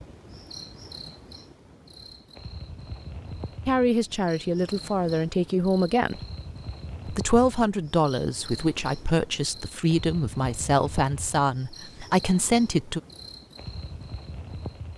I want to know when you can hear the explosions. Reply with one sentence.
The explosions can't be heard in this clip.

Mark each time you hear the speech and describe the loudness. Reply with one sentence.
The speech can be heard briefly from 3.6 to 6.2 s; and from 7.0 to 13.0 s, at a steady volume.